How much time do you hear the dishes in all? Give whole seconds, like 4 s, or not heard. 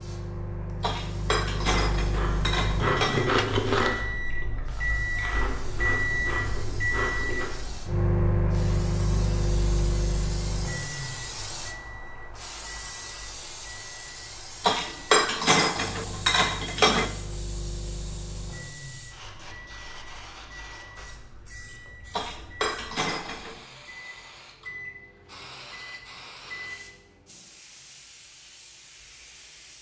7 s.